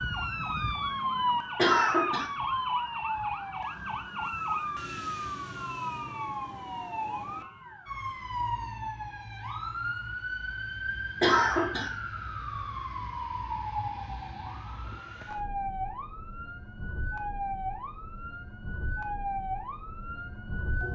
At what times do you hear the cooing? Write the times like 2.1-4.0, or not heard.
not heard.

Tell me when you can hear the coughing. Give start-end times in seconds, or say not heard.
1.6-2.3, 11.2-11.9.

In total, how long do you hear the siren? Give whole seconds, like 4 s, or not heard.
21 s.